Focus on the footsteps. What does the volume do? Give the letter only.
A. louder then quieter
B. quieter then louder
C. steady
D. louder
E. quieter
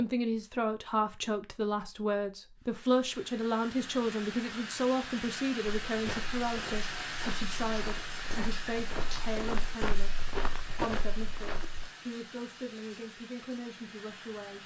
D.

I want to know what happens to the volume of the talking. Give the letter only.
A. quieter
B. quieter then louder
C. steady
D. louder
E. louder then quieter
A.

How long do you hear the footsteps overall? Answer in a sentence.
You can hear the footsteps for 6 seconds altogether.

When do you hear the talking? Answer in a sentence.
You can hear the talking from 0.0 to 14.6 s.